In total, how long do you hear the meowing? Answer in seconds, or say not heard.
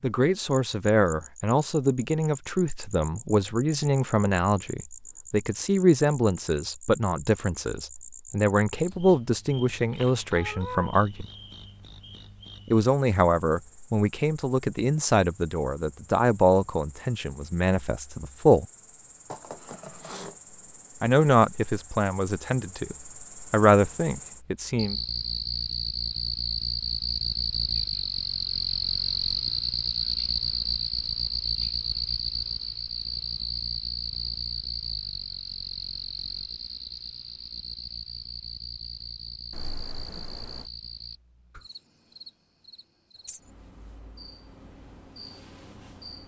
3 s.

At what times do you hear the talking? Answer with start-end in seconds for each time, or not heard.
0.0-11.2, 12.7-18.6, 21.0-24.9.